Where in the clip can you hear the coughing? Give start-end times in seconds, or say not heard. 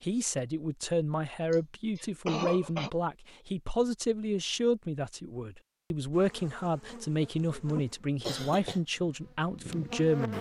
1.5-2.9, 8.2-8.8.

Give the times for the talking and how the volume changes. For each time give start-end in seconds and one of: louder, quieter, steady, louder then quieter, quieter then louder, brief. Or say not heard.
0.0-10.3 steady.